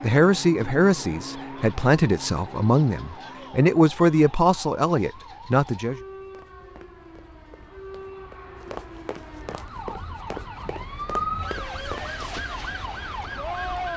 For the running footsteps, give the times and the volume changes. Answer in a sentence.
You can hear the running footsteps from 6.2 to 12.5 s, getting louder.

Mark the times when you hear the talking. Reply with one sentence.
You can hear the talking from 0.0 to 6.0 s.